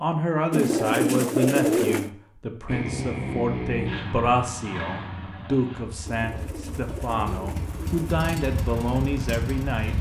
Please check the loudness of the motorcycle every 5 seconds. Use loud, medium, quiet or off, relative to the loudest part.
loud, medium.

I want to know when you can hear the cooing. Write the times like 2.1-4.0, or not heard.
0.5-2.1, 6.0-8.2.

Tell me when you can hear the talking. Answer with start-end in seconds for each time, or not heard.
0.0-9.9.